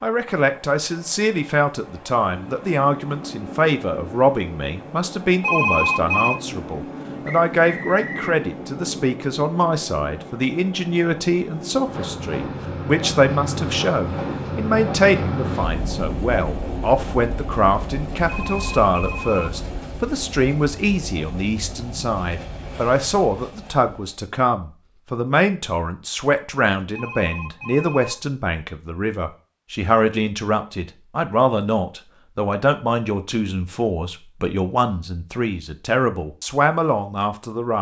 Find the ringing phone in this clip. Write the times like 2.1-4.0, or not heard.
5.4-6.4, 18.2-19.5, 26.9-28.3.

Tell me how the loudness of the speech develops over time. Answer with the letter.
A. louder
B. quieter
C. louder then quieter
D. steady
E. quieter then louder
D.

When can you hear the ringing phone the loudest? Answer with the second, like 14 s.
6 s.